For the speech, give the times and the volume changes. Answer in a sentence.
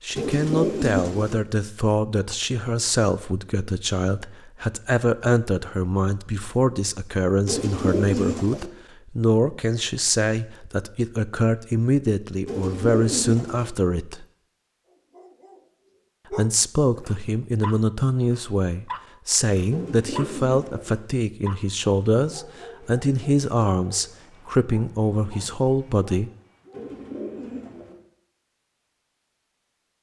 You can hear the speech from 0.0 to 14.2 s, at a steady volume; and from 16.3 to 26.3 s, at a steady volume.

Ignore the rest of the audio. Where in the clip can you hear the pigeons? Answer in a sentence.
The pigeons can be heard from 0.1 to 1.4 s, from 7.5 to 8.7 s, from 12.4 to 13.7 s, from 19.7 to 20.9 s and from 26.7 to 27.9 s.